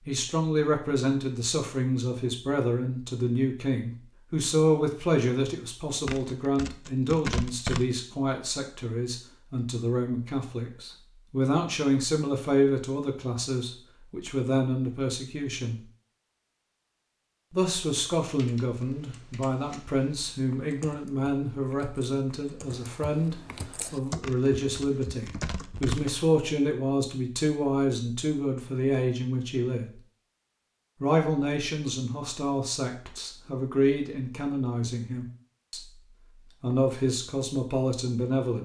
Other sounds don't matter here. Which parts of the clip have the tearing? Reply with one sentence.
You can hear the tearing from 6.0 to 7.8 s and from 24.2 to 26.1 s.